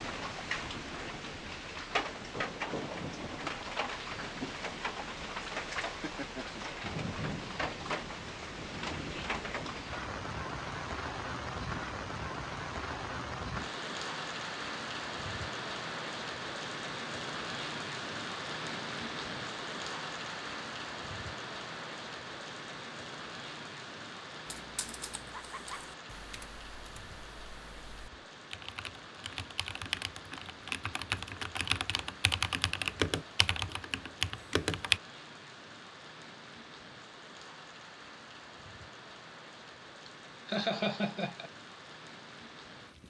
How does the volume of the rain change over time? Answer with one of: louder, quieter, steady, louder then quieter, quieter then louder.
quieter.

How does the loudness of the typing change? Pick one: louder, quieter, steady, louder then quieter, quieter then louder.
louder.